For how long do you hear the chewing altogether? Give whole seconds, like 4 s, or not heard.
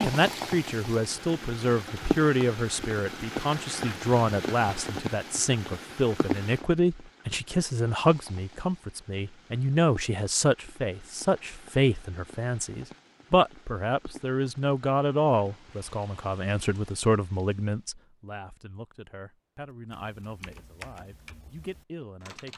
not heard.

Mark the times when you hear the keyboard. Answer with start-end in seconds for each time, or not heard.
19.9-22.5.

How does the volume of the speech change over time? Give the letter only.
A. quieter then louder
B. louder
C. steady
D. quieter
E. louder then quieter
D.